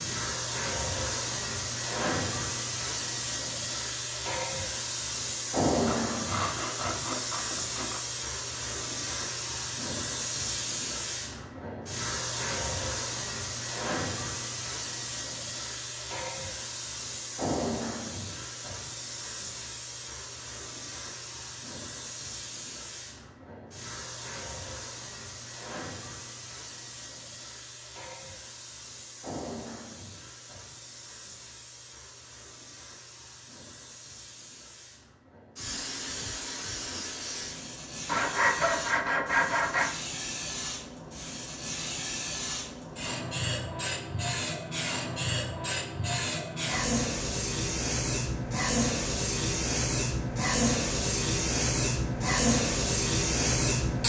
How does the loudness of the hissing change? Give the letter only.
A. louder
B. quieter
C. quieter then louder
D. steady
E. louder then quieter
C.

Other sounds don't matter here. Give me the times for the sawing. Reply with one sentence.
The sawing can be heard from 5.8 to 8.0 s and from 38.0 to 39.9 s.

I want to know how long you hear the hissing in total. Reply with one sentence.
You can hear the hissing for 54 seconds altogether.